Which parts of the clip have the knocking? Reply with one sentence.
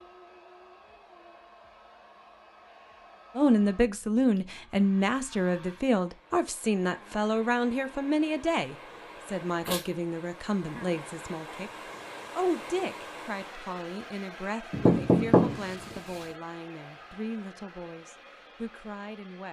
The knocking can be heard from 14.7 to 16.0 s.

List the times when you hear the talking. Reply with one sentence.
You can hear the talking from 3.4 to 11.7 s and from 12.3 to 19.4 s.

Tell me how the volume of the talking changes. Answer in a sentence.
The volume of the talking goes down.